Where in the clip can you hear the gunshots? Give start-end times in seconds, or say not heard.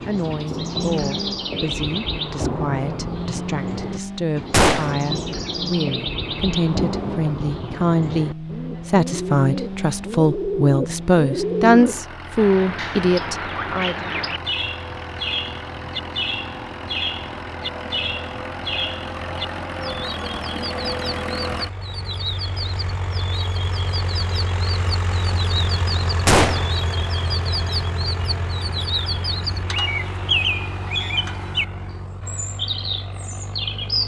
4.5-5.0, 26.2-26.7.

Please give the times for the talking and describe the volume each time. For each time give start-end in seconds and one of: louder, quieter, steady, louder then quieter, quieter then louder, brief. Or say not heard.
0.1-14.1 louder.